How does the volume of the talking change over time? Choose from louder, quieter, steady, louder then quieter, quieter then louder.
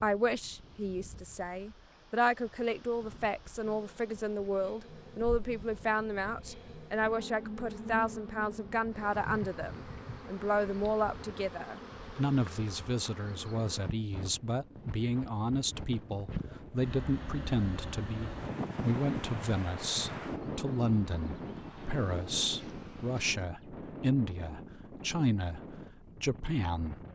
steady.